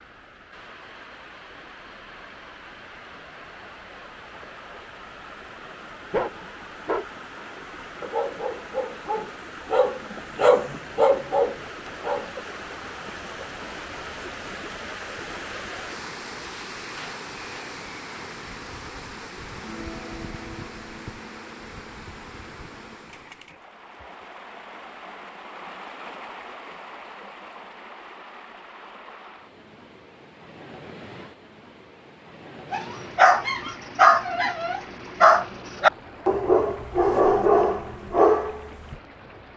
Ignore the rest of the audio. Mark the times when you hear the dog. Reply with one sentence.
You can hear the dog from 6.1 to 12.3 s and from 32.7 to 39.0 s.